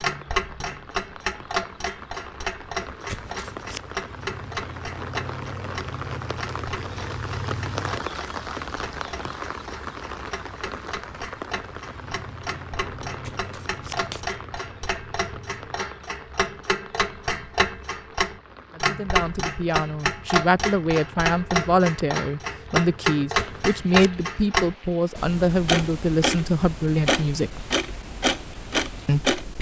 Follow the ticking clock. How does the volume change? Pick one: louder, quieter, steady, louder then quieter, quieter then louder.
quieter then louder.